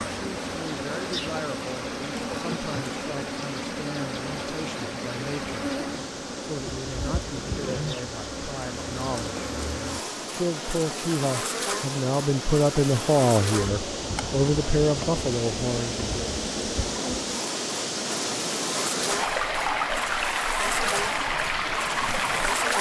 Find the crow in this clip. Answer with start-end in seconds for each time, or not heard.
not heard.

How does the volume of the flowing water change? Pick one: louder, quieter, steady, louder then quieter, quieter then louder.
louder.